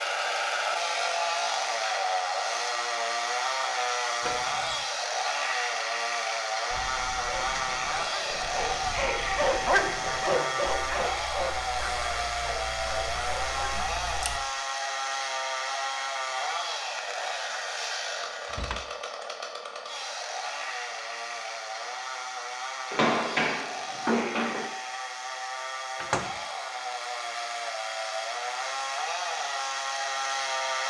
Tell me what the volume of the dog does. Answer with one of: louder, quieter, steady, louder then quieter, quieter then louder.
louder then quieter.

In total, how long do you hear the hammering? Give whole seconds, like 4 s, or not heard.
2 s.